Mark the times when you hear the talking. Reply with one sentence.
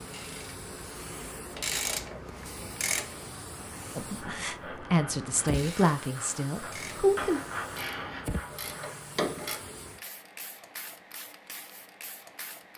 The talking can be heard from 4.0 to 7.4 s.